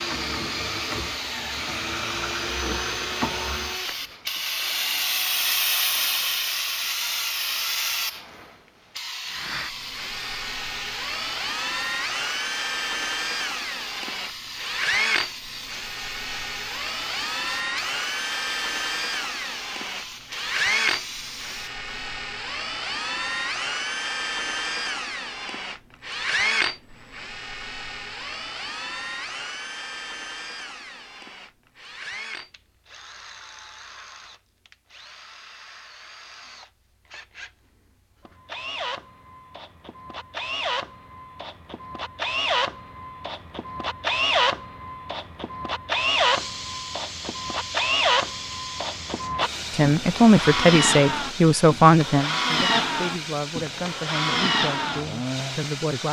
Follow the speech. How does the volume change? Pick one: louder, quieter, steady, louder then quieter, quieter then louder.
quieter.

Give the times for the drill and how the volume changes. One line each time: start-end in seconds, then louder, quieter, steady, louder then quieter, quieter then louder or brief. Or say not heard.
0.0-6.3 quieter
9.2-55.8 quieter then louder.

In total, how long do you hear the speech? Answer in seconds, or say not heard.
6 s.